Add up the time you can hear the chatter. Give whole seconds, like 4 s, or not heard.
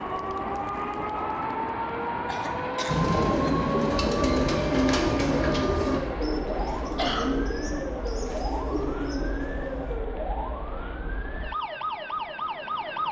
not heard.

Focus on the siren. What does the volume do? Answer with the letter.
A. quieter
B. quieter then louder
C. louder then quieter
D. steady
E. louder
D.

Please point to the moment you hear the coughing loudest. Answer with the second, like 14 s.
7 s.